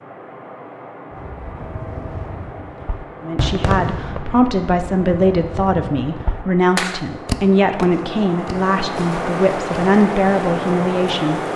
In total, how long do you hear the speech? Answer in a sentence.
The speech can be heard for 8 seconds in total.